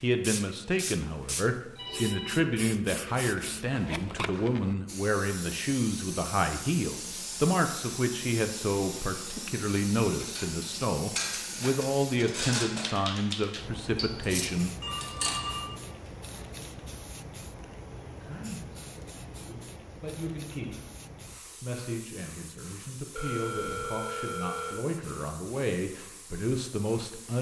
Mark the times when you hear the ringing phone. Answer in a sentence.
You can hear the ringing phone from 1.7 to 2.4 s, from 14.8 to 16.7 s and from 23.1 to 24.8 s.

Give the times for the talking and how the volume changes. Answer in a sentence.
The talking can be heard from 0.0 to 14.8 s, at a steady volume; briefly from 18.1 to 20.8 s; and from 21.5 to 27.3 s, getting louder.